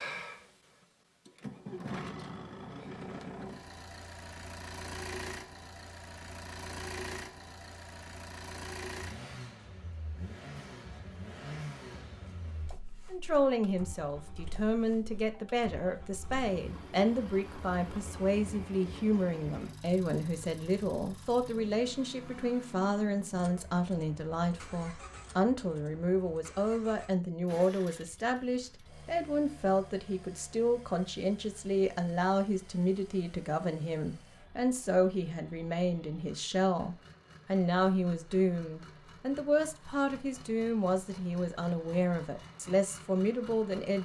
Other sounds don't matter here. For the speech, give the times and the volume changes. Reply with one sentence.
The speech can be heard from 13.1 to 44.0 s, at a steady volume.